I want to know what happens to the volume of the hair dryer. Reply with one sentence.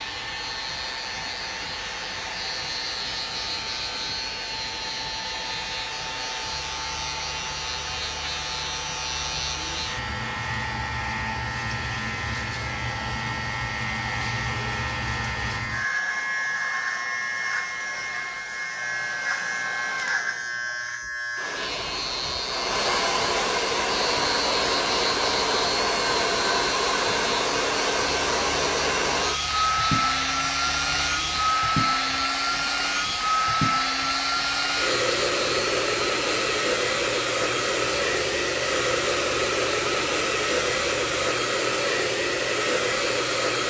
The loudness of the hair dryer goes up.